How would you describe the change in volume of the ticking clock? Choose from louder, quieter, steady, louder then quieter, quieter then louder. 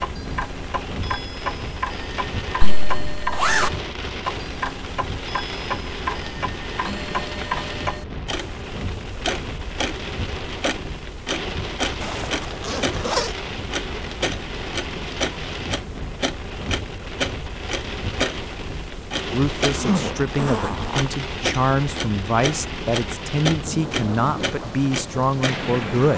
steady.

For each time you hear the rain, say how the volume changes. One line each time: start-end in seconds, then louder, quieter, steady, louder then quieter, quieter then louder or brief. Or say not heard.
0.0-26.1 steady.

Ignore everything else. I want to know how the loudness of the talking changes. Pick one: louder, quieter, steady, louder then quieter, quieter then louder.
steady.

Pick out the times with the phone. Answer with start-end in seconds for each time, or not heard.
not heard.